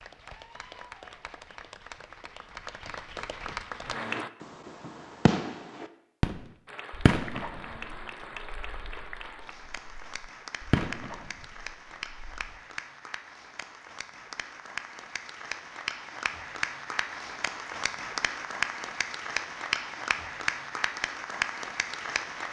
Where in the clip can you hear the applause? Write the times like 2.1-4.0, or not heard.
0.0-4.3, 6.7-22.4.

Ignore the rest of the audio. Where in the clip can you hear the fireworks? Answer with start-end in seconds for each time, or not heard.
4.0-12.3.